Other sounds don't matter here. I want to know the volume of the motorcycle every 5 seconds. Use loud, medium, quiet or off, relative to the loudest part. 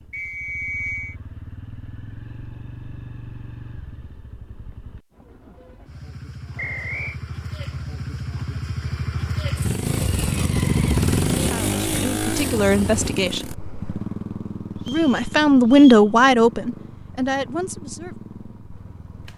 quiet, medium, loud, quiet.